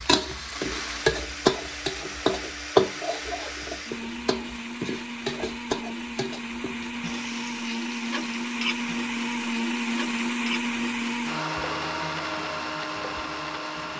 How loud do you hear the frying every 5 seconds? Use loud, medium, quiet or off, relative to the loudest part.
loud, medium, quiet.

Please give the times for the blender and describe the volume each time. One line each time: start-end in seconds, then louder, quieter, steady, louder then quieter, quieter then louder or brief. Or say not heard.
0.0-13.9 louder.